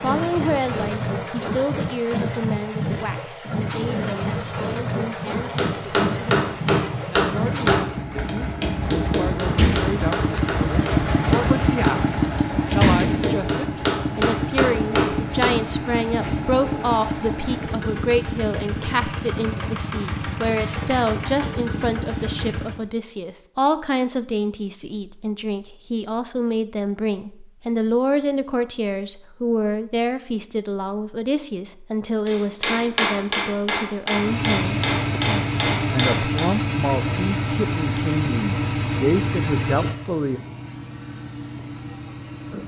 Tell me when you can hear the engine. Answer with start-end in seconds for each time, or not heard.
0.0-22.8, 34.1-42.6.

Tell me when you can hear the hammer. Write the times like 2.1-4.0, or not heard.
5.4-15.8, 32.2-36.5.